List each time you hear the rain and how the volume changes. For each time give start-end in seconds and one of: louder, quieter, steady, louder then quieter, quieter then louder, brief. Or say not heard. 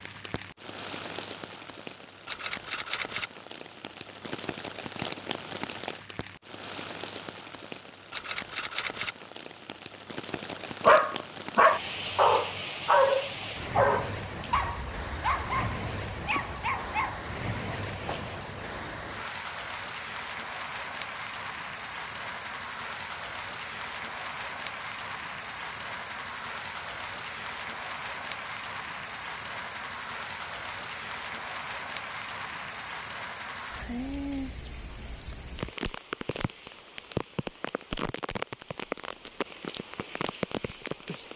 0.0-41.3 steady.